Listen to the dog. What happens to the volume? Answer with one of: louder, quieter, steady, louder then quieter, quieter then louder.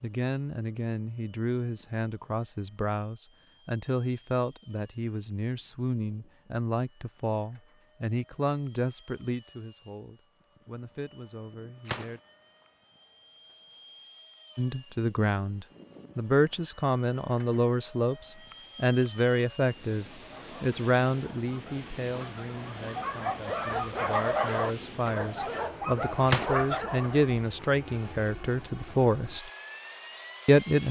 louder.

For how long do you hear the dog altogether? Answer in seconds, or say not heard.
7 s.